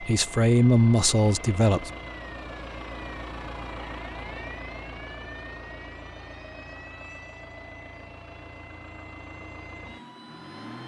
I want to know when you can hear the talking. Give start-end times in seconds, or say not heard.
0.0-1.9.